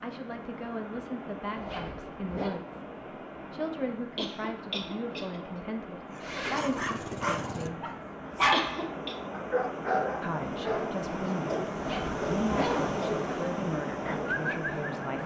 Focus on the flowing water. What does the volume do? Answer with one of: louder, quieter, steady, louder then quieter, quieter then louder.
louder.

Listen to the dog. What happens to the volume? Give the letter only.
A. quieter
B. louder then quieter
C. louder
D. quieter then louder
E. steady
B.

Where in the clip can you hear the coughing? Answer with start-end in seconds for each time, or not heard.
4.2-5.4, 8.5-9.2.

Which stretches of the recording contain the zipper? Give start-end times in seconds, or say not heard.
1.6-2.6, 6.2-6.8, 11.7-12.9.